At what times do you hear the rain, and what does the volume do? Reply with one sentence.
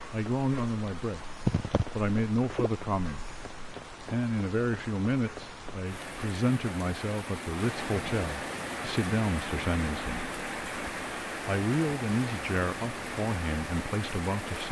You can hear the rain from 0.0 to 14.6 s, getting quieter then louder.